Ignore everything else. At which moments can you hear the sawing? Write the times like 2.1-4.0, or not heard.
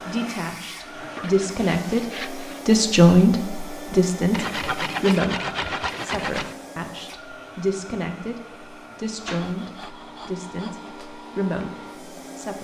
0.9-2.6, 4.3-6.5, 9.1-10.9.